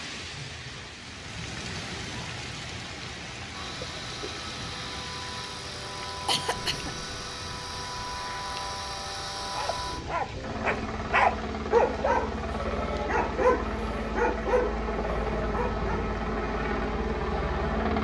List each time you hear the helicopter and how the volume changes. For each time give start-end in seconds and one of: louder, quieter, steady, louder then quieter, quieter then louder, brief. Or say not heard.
3.5-18.0 louder.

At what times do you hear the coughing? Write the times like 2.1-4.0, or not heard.
6.0-7.0.